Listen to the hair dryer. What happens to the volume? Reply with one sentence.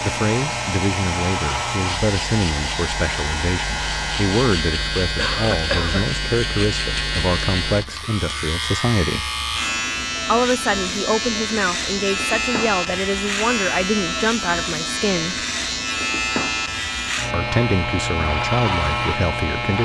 The volume of the hair dryer stays about the same.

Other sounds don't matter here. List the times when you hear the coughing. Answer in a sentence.
The coughing can be heard from 5.2 to 6.1 s.